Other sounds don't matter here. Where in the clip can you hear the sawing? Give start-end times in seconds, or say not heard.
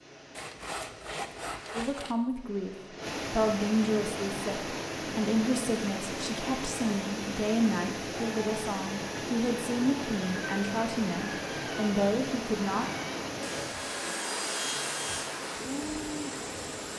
0.3-2.1, 13.4-15.3.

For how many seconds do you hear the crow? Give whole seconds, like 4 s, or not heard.
not heard.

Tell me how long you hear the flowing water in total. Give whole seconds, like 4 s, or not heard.
17 s.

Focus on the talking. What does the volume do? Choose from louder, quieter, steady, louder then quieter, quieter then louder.
steady.